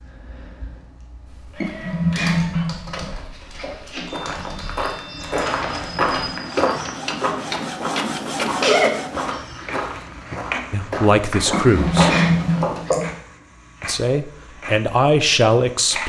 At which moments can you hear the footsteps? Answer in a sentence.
The footsteps can be heard from 4.0 to 12.7 s.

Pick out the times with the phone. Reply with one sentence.
You can hear the phone from 11.8 to 12.9 s.